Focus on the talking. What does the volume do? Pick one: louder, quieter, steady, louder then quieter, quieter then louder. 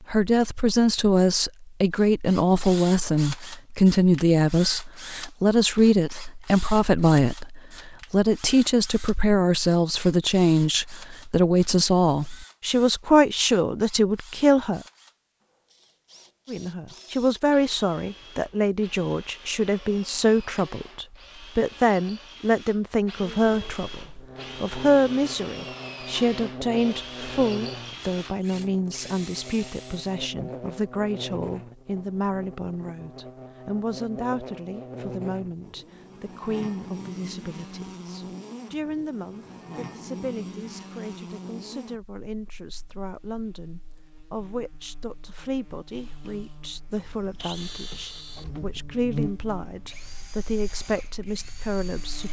quieter.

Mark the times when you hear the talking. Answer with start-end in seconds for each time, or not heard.
0.1-14.8, 16.4-52.2.